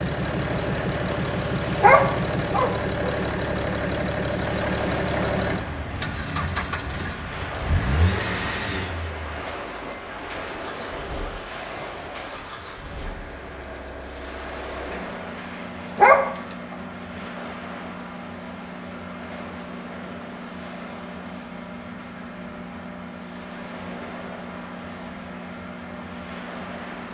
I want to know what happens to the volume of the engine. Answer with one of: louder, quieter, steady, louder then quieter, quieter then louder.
quieter.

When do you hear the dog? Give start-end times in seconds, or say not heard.
1.8-3.1, 15.9-16.6.